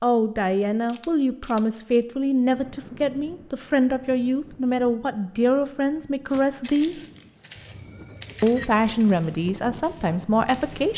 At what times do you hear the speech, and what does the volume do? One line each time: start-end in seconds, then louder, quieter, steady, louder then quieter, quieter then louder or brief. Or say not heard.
0.0-7.0 steady
8.4-10.9 brief.